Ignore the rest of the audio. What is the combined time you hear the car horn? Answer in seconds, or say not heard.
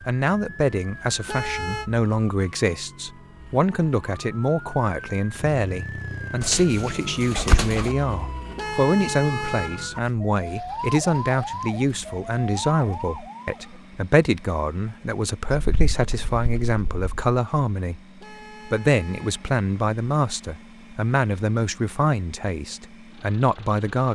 3 s.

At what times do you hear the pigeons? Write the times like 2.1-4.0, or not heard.
6.4-7.9, 15.6-17.1.